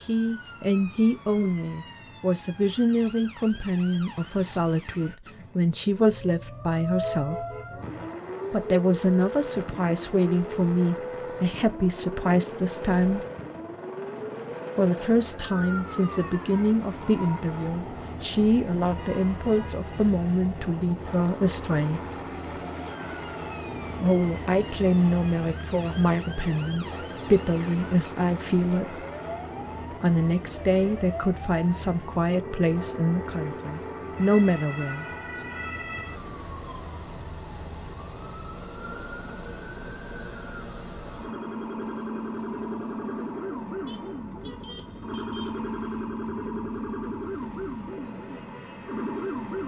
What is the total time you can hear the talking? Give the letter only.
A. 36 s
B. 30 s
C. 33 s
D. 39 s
B.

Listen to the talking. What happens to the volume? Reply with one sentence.
The loudness of the talking stays about the same.